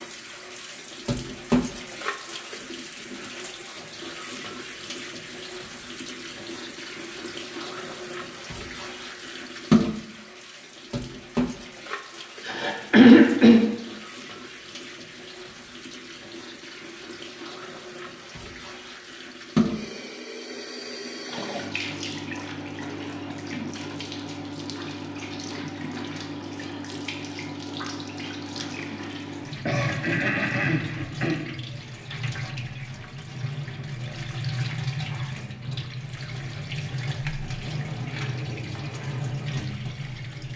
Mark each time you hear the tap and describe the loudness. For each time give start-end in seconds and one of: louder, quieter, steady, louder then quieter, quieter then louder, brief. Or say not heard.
0.0-40.5 steady.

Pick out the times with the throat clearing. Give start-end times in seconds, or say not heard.
12.4-13.6, 29.6-31.6.